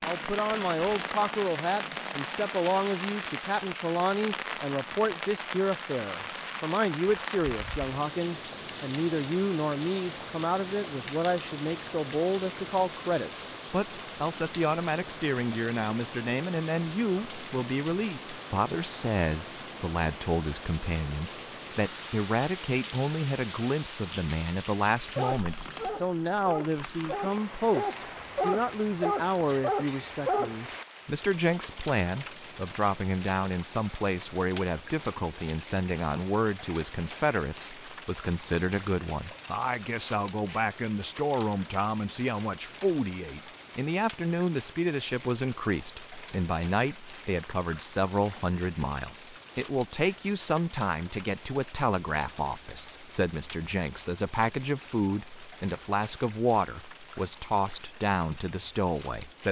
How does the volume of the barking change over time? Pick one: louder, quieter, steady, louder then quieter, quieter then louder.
louder.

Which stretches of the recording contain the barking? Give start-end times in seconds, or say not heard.
25.1-30.8.